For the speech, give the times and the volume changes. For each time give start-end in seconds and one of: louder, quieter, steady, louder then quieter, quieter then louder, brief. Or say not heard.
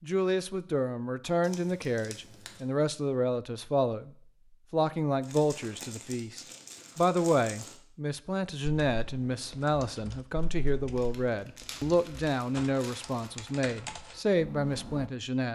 0.0-4.1 steady
4.7-15.5 steady.